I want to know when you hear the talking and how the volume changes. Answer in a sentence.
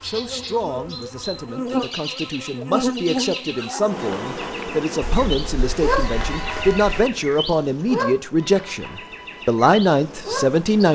The talking can be heard from 0.0 to 10.9 s, getting louder.